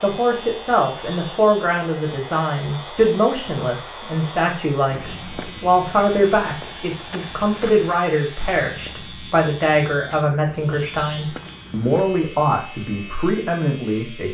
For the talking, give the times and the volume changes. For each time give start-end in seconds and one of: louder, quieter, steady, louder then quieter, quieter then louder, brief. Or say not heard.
0.0-14.2 steady.